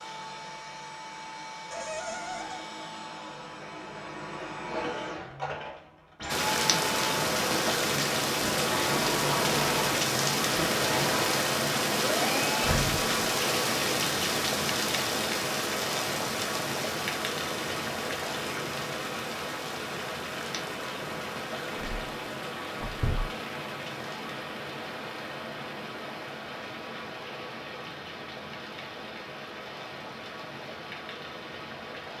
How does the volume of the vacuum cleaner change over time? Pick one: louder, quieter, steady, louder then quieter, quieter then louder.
louder.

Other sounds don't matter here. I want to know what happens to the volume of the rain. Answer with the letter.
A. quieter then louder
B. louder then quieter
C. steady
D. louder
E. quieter
E.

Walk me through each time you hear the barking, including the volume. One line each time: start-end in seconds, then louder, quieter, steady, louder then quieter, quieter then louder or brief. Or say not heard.
not heard.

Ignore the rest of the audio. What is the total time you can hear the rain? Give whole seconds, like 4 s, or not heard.
26 s.